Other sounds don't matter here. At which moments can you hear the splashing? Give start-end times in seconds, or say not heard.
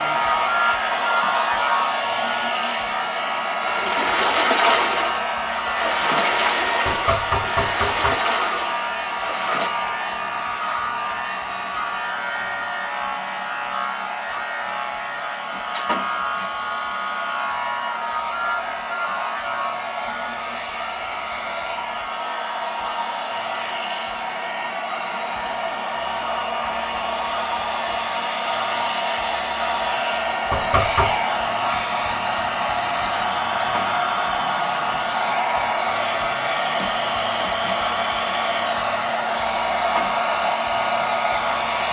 3.6-9.7.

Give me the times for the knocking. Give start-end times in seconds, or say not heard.
6.8-8.2, 30.5-31.1.